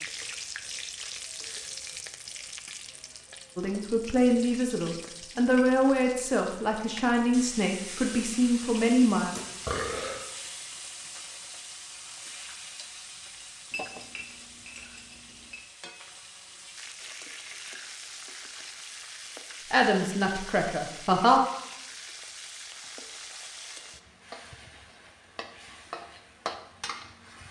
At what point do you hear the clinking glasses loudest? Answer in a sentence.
The loudest moment of the clinking glasses is at 14 seconds.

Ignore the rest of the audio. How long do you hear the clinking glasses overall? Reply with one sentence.
The clinking glasses can be heard for 2 seconds in total.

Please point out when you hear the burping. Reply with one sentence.
The burping can be heard from 9.3 to 10.2 s.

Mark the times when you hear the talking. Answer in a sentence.
You can hear the talking from 3.5 to 9.3 s and from 19.7 to 21.4 s.